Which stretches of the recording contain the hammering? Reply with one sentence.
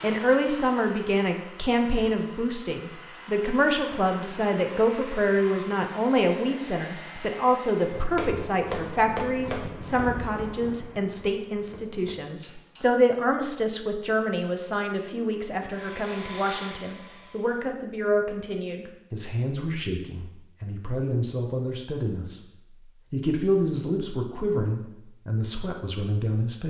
The hammering can be heard from 7.8 to 13.0 s.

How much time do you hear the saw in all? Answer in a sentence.
The saw can't be heard in this clip.